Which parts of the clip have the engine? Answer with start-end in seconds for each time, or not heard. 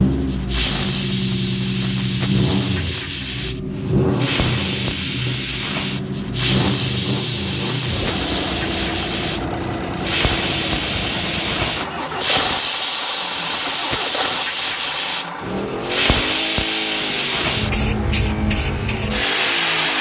0.0-19.9.